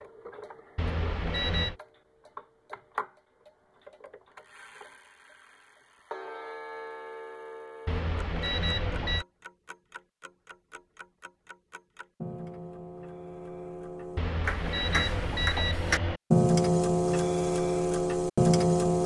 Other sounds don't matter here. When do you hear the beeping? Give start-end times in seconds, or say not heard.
0.8-1.8, 7.8-9.2, 14.2-16.2.